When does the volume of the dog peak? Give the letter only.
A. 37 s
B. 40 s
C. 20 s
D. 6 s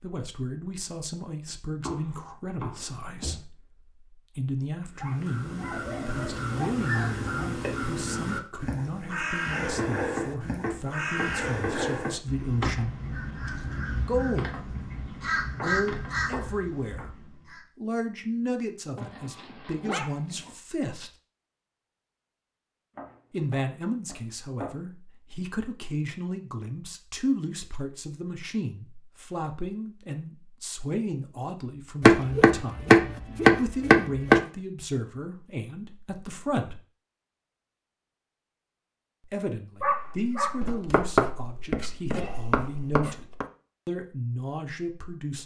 B.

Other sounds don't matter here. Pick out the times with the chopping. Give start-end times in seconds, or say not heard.
1.8-3.4, 9.8-12.2, 15.6-17.1, 22.9-24.8, 32.0-34.4, 40.6-43.5.